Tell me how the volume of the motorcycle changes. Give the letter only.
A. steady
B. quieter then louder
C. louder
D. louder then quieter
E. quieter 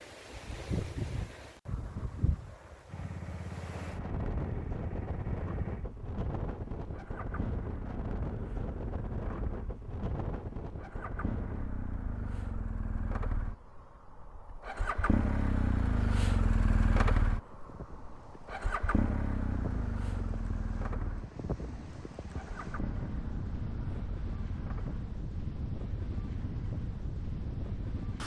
D.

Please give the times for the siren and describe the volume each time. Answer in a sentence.
You can't hear the siren here.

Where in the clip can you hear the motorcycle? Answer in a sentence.
The motorcycle can be heard from 2.9 to 28.2 s.